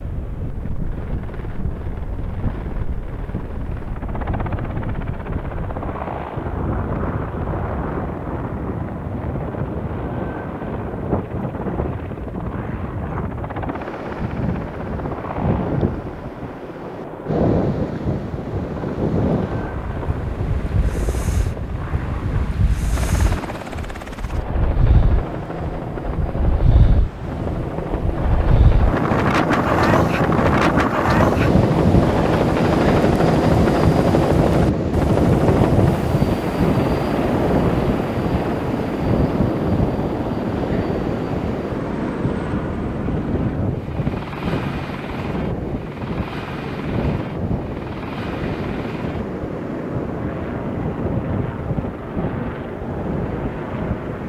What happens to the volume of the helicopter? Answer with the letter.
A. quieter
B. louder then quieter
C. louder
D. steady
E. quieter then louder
B.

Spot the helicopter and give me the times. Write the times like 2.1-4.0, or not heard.
0.0-54.2.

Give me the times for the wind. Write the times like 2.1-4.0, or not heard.
0.0-54.2.